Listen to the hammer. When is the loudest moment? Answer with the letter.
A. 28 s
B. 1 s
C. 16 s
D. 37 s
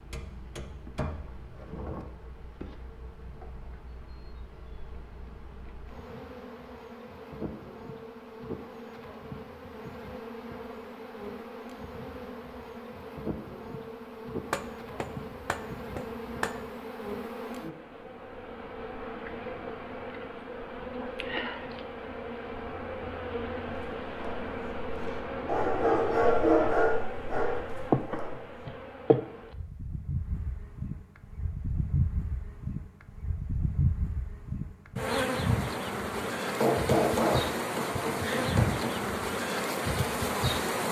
D.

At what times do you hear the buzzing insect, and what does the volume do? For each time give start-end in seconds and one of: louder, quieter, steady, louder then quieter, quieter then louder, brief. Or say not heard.
0.0-40.8 louder.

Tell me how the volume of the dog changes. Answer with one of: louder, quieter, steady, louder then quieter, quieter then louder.
louder then quieter.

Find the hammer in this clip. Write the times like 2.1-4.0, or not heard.
0.1-2.0, 14.5-16.5, 36.1-39.0.